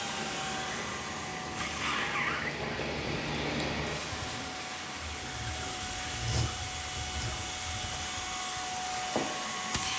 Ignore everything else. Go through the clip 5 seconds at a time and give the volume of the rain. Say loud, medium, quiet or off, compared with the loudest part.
loud, medium.